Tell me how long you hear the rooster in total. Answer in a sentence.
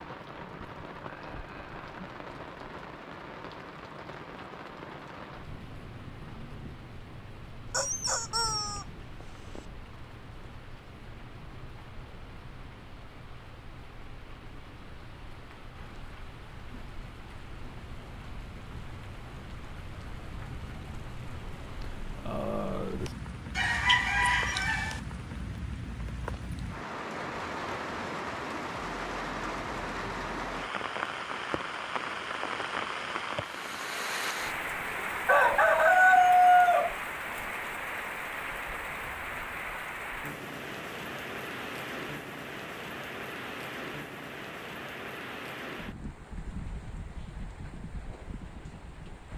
You can hear the rooster for 4 seconds altogether.